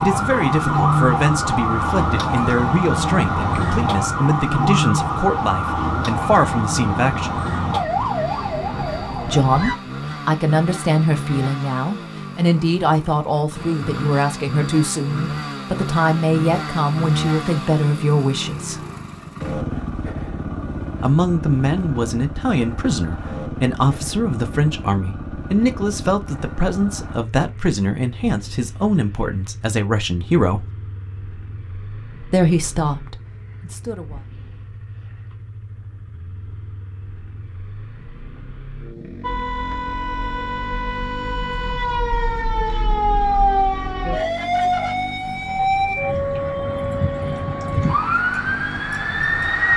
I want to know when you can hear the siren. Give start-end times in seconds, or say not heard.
0.0-9.8, 39.2-49.7.